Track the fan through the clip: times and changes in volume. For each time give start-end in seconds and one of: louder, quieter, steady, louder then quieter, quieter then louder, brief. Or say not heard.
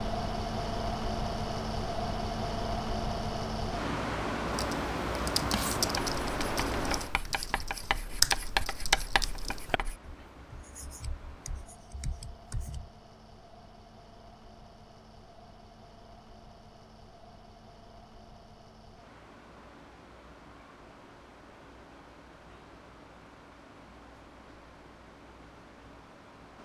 0.0-26.6 quieter.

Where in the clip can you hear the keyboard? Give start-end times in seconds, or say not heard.
4.5-9.8.